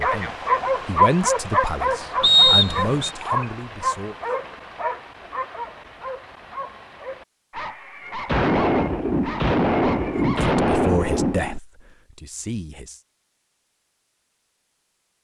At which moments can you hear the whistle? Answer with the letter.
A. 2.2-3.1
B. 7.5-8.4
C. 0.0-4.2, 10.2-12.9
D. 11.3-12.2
A.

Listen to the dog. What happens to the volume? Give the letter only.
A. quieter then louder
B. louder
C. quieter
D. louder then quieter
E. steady
C.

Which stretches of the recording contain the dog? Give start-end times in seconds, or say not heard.
0.0-11.3.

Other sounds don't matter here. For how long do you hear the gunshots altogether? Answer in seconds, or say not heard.
3 s.